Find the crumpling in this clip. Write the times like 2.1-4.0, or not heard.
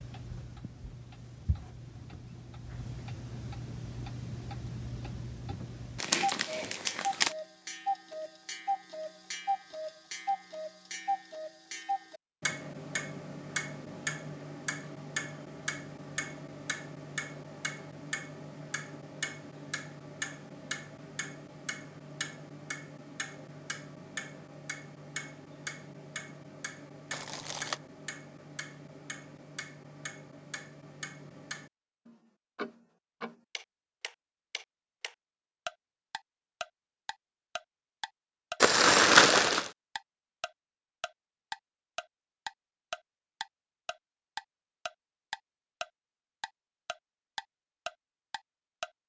6.0-7.3, 27.1-27.8, 38.6-39.7.